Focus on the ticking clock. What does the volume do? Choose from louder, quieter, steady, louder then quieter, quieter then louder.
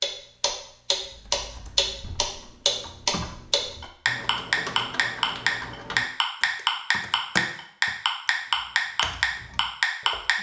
steady.